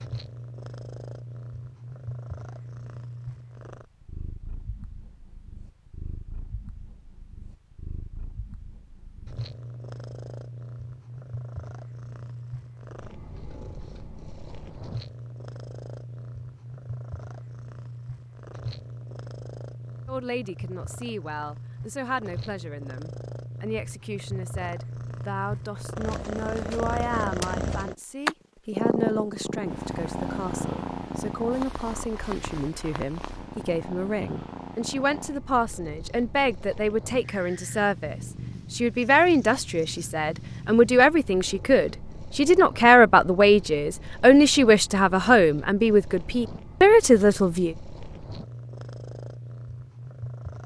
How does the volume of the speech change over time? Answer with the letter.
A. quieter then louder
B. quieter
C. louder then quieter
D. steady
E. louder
E.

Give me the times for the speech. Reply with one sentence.
You can hear the speech from 20.1 to 47.8 s.